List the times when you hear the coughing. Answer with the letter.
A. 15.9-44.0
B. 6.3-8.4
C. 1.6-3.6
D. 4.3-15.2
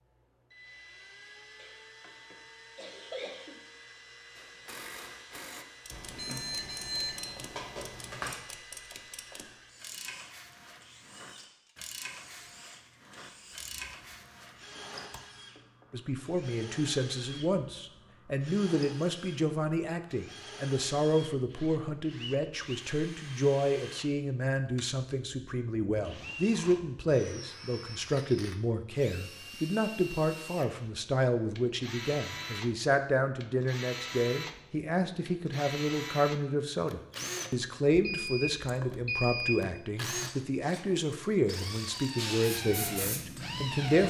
C.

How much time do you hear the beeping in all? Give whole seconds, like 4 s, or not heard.
4 s.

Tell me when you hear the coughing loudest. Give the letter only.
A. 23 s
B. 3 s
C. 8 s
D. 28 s
B.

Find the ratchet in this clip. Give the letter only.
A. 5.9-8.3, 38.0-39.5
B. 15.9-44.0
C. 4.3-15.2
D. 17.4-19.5
C.